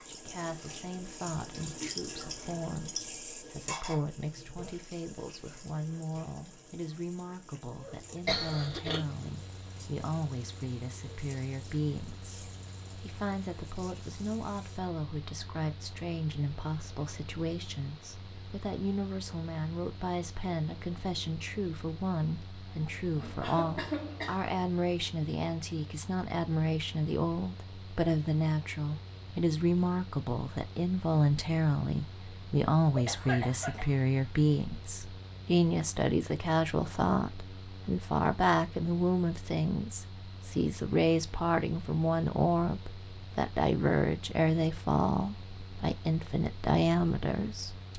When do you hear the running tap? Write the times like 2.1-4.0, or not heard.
0.0-14.8.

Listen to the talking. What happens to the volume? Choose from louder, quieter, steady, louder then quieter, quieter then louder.
louder.